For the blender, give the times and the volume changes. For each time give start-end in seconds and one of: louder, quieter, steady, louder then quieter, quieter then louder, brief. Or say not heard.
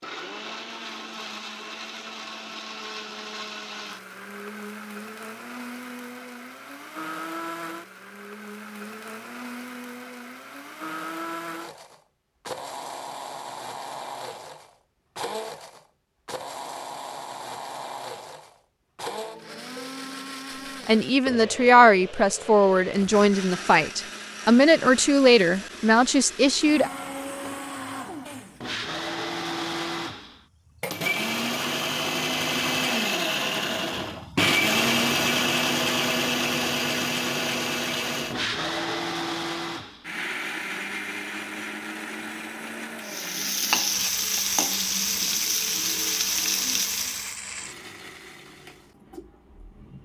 0.0-50.0 louder then quieter.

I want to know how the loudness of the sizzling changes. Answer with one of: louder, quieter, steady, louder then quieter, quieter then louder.
steady.